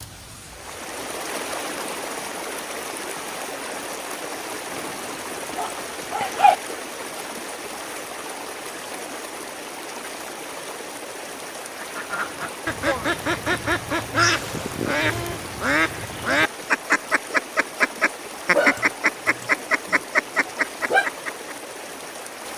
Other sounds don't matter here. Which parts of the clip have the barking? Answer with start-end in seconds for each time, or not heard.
4.8-6.5, 18.5-21.1.